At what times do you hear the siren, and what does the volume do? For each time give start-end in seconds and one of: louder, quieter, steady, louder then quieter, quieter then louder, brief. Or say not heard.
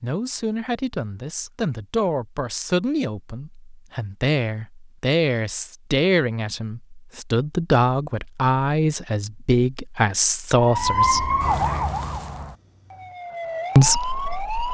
10.6-14.6 quieter then louder.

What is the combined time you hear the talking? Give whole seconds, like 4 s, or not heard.
12 s.